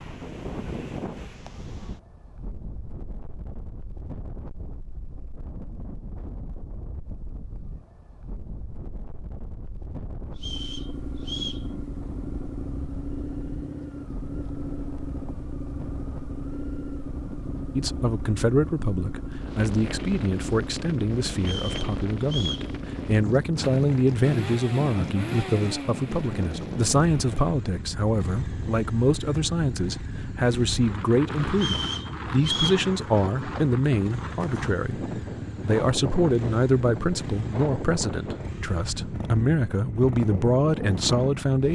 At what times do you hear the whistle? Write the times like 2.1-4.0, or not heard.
10.3-11.7, 21.4-22.7, 31.6-32.9.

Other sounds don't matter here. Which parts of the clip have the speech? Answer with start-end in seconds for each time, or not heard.
17.8-41.6.